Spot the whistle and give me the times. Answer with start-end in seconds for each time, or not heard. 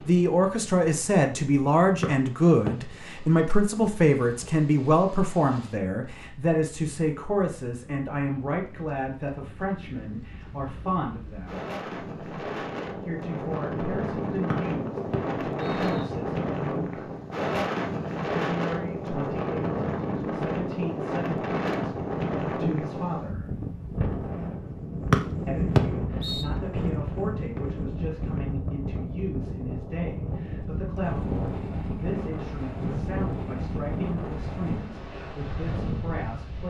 2.0-2.7, 14.5-16.1, 25.1-26.4.